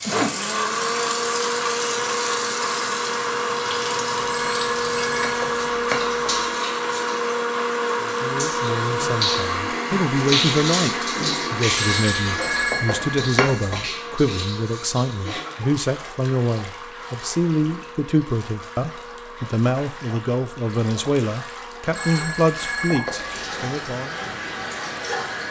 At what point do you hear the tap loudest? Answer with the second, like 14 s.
11 s.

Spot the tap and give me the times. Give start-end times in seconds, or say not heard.
0.0-25.4.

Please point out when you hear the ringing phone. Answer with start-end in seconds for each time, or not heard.
4.2-6.4, 11.7-13.8, 21.9-23.5.